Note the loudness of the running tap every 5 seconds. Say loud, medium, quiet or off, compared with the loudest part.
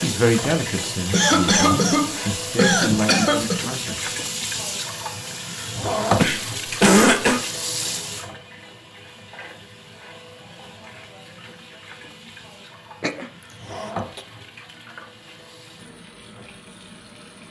loud, loud, medium, quiet.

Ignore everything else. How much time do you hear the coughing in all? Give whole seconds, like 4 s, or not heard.
5 s.